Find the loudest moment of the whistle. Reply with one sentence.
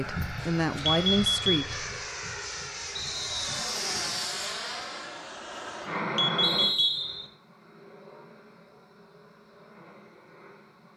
The volume of the whistle peaks at 7 seconds.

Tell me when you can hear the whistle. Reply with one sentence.
You can hear the whistle from 2.9 to 3.6 s and from 6.4 to 7.3 s.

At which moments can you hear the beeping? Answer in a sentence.
You can hear the beeping from 0.8 to 1.7 s and from 6.2 to 7.0 s.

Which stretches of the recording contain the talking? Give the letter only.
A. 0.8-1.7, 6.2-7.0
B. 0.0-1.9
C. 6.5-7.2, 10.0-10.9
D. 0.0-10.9
B.